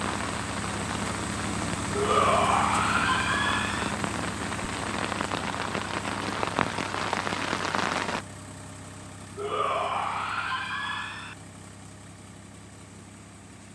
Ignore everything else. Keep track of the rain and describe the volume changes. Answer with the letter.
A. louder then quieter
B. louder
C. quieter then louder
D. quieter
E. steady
B.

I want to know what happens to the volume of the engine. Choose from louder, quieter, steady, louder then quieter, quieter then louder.
quieter.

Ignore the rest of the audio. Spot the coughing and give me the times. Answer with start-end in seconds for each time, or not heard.
not heard.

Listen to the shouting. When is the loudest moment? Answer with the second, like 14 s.
2 s.